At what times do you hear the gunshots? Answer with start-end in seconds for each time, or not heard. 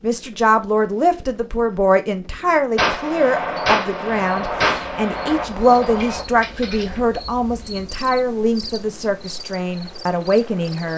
2.8-7.0.